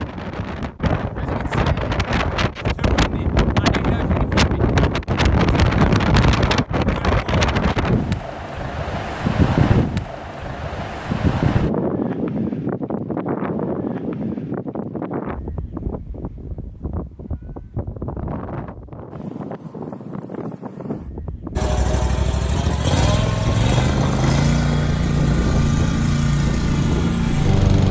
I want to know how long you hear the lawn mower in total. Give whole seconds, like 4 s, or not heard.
6 s.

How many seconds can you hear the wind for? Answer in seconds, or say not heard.
28 s.